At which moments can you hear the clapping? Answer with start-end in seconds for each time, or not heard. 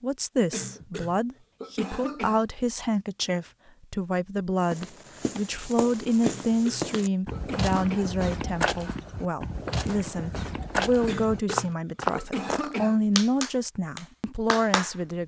13.2-14.9.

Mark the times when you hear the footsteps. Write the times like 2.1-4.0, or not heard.
4.7-12.7.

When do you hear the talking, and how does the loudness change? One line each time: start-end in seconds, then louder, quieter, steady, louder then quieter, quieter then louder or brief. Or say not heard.
0.0-15.2 steady.